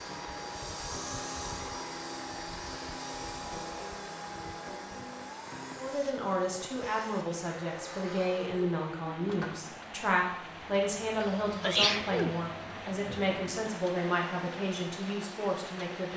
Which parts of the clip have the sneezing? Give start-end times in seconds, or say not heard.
11.2-12.3.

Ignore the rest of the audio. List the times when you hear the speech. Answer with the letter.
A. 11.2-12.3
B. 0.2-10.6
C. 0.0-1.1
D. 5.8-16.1
D.